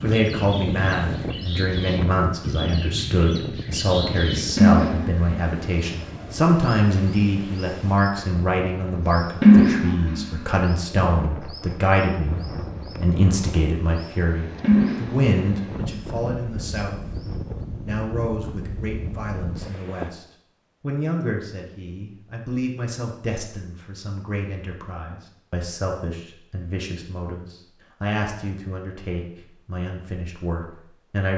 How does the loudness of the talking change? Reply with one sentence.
The volume of the talking goes down.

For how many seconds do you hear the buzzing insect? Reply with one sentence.
The buzzing insect can't be heard in this clip.